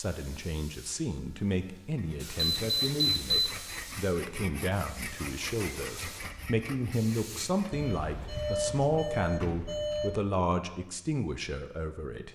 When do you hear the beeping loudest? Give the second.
3 s.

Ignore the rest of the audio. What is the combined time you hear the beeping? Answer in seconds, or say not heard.
4 s.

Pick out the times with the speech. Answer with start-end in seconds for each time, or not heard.
0.0-12.3.